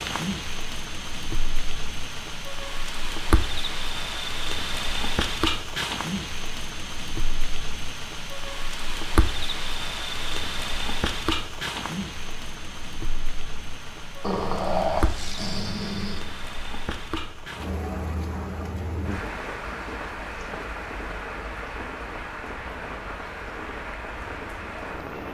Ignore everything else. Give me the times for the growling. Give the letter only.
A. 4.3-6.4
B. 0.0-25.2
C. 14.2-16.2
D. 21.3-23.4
C.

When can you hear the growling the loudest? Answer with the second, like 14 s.
15 s.